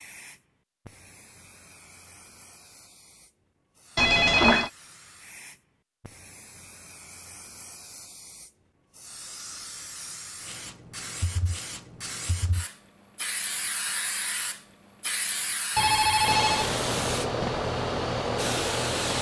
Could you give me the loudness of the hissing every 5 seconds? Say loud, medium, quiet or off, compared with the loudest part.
quiet, quiet, medium, loud.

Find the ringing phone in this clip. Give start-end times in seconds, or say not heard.
4.0-4.7, 15.8-17.7.